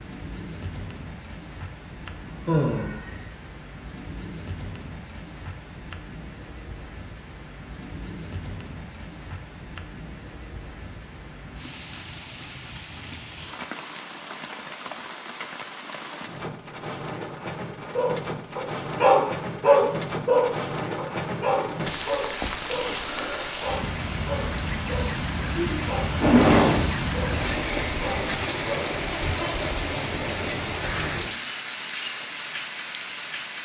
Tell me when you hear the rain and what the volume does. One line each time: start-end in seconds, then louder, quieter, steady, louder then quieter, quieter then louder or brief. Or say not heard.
0.0-33.5 louder.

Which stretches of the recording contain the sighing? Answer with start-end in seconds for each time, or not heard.
2.2-3.2, 25.6-26.9.